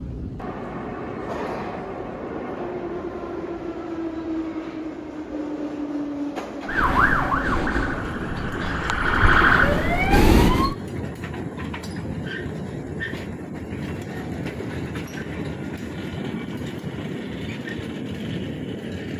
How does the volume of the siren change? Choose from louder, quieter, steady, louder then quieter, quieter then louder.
quieter then louder.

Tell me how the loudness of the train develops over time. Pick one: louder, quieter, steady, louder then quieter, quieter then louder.
steady.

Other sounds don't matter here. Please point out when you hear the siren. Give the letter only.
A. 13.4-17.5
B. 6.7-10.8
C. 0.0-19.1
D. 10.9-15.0
B.